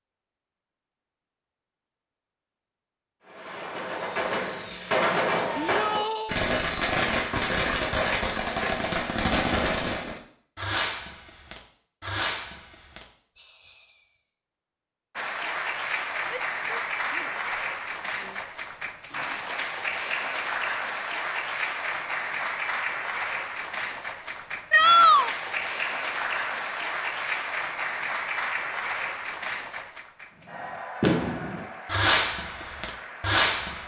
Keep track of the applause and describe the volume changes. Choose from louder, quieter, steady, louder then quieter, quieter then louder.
quieter.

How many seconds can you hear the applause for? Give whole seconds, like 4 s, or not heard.
19 s.